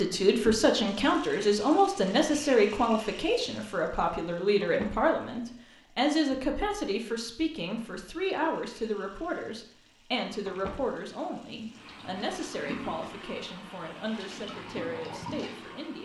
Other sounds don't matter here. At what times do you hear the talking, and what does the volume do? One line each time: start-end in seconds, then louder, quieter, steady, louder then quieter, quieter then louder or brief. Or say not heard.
0.0-15.9 quieter.